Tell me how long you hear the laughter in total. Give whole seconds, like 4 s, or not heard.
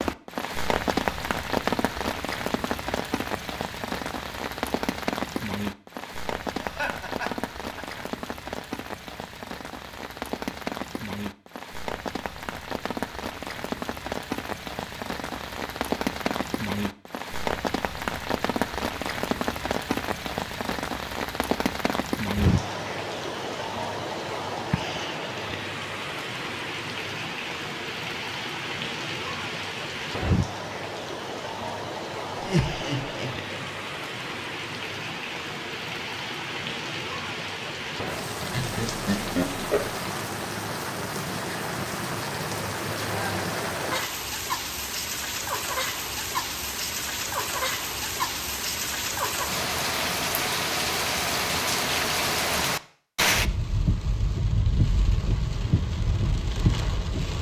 4 s.